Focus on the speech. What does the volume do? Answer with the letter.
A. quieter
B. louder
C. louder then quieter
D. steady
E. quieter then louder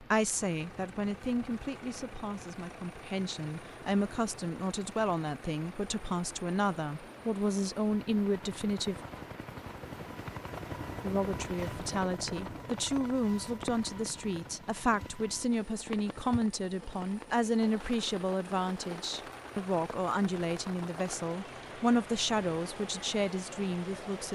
D.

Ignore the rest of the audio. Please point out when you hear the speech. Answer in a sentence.
You can hear the speech from 0.0 to 8.9 s and from 11.0 to 24.3 s.